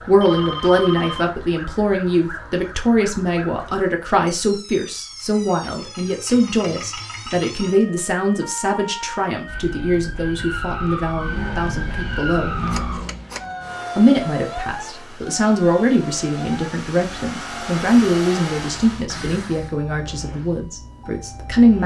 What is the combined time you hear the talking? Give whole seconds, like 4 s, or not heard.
20 s.